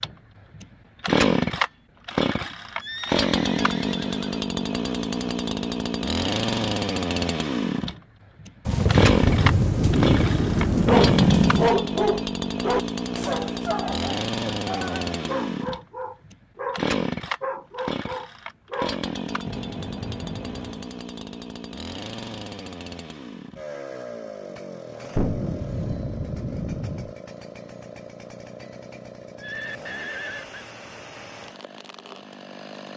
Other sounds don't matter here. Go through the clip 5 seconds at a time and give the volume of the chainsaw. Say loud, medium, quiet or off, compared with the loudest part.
loud, loud, loud, medium, quiet, quiet, quiet.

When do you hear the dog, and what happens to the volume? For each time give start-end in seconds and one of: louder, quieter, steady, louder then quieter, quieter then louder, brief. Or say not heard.
10.7-20.9 quieter.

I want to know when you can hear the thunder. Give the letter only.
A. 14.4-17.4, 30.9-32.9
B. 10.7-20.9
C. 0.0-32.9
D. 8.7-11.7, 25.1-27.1
D.